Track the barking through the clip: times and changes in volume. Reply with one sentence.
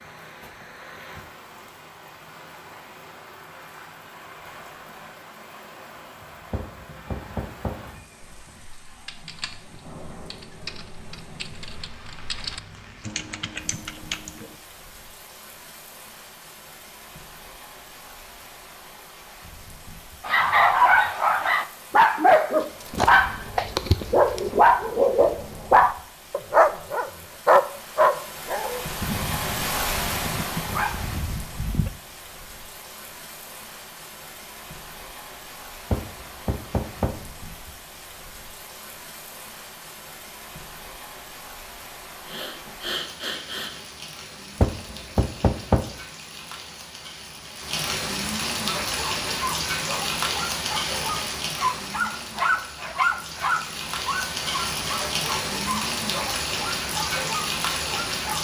You can hear the barking from 20.2 to 31.9 s, getting quieter; and from 48.6 to 58.3 s, getting louder then quieter.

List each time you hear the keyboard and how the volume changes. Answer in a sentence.
The keyboard can be heard from 8.2 to 14.6 s, getting louder.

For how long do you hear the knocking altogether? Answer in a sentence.
You can hear the knocking for 4 seconds altogether.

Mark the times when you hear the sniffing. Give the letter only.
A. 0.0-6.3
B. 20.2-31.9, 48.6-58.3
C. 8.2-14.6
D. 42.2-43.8
D.